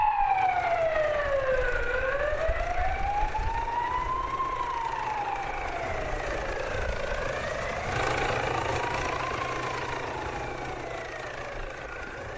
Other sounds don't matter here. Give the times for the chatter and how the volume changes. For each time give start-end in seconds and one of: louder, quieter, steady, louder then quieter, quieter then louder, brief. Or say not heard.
not heard.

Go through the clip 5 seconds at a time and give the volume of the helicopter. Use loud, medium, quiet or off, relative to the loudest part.
medium, loud, medium.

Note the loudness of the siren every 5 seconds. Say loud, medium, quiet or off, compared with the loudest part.
loud, medium, quiet.